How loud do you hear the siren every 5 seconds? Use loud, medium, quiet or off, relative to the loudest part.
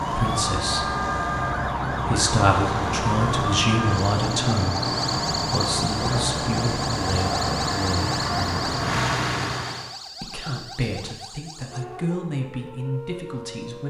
loud, loud, medium.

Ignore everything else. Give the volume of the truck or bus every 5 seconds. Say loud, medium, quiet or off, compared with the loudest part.
loud, loud, off.